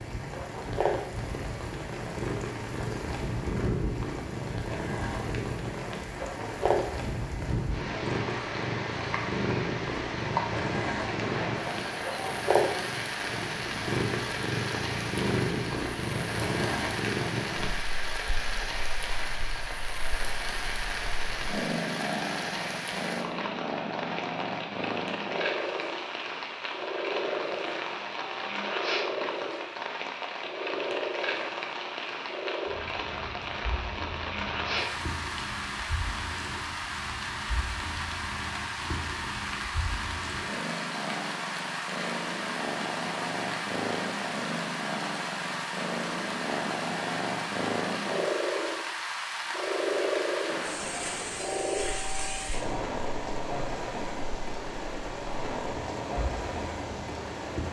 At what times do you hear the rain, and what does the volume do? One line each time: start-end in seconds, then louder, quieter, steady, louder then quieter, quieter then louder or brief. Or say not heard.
0.0-57.6 steady.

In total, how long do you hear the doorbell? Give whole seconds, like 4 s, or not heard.
4 s.